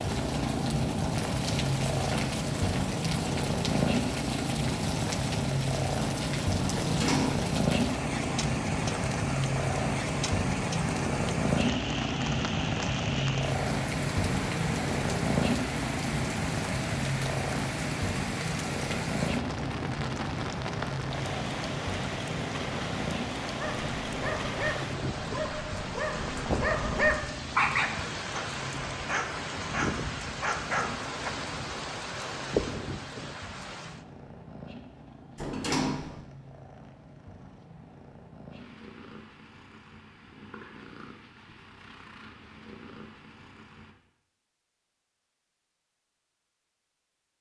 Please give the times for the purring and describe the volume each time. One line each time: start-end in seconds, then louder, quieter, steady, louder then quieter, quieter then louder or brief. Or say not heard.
0.0-44.0 quieter.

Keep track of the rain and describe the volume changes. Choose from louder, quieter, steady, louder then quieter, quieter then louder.
steady.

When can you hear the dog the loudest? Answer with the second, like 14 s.
28 s.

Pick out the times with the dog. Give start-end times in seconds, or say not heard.
23.6-31.3.